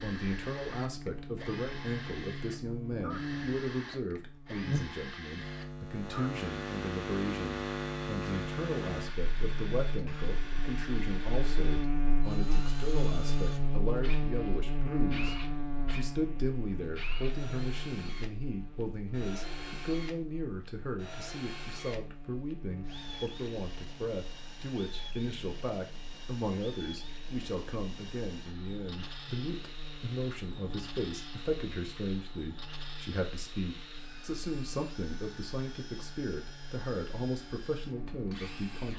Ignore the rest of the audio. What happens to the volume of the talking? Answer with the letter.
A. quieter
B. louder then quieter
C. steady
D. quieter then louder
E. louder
C.